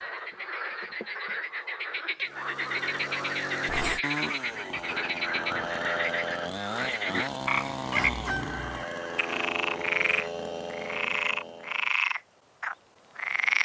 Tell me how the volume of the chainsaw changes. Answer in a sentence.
The volume of the chainsaw stays about the same.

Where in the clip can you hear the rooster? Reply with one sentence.
The rooster can be heard from 7.9 to 9.5 s.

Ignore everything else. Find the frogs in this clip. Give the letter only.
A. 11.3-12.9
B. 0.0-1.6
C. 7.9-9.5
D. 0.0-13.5
D.